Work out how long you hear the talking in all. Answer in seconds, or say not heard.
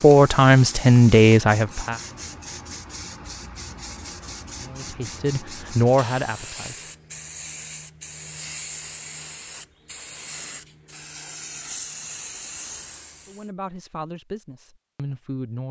7 s.